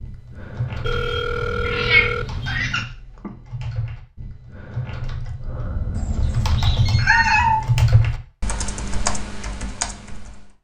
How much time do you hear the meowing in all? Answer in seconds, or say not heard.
3 s.